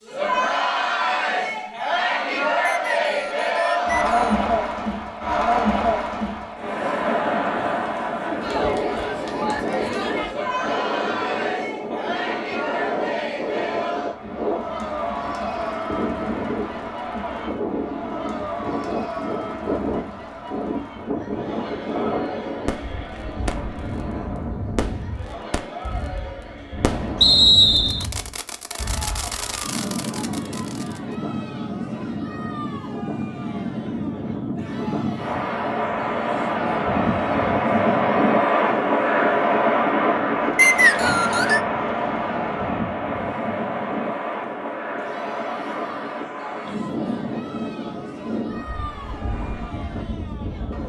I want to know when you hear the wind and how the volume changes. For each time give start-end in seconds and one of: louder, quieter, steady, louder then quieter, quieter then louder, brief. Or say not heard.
8.3-50.8 louder then quieter.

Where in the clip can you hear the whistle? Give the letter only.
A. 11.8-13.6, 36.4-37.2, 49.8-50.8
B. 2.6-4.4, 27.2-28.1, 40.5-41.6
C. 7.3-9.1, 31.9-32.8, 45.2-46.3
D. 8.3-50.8
B.